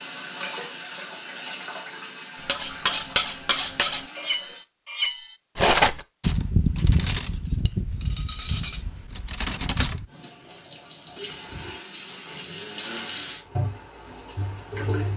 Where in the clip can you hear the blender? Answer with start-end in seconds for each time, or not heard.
not heard.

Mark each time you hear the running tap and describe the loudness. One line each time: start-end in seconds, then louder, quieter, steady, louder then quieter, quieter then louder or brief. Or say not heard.
0.0-4.7 quieter
10.1-15.1 louder then quieter.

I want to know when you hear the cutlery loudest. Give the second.
6 s.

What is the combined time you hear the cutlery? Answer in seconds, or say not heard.
8 s.